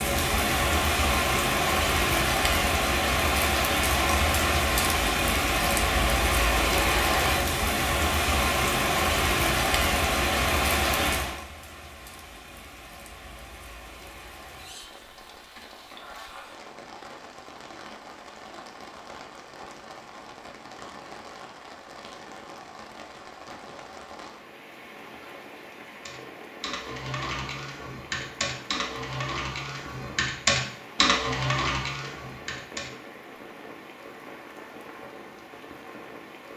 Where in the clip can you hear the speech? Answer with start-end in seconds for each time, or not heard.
not heard.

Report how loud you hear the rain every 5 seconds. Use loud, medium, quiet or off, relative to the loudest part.
loud, loud, medium, quiet, quiet, quiet, quiet, quiet.